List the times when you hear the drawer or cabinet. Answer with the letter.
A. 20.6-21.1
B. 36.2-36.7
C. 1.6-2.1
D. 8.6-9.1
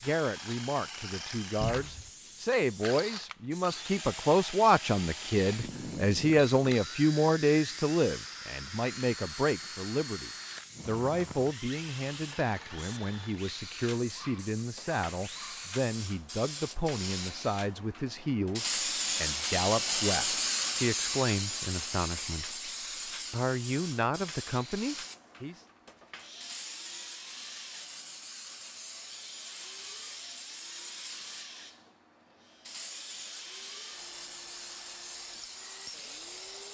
C.